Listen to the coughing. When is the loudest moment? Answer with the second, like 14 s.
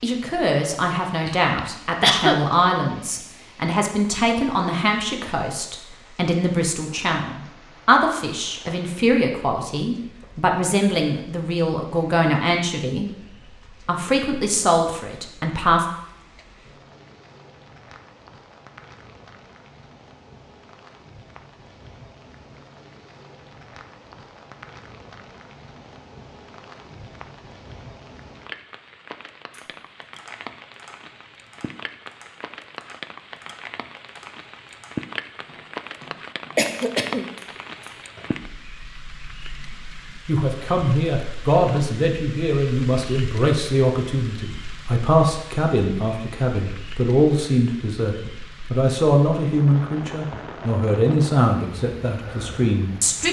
2 s.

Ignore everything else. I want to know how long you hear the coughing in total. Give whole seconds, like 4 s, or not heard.
2 s.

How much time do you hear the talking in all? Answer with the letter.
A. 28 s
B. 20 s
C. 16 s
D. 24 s
A.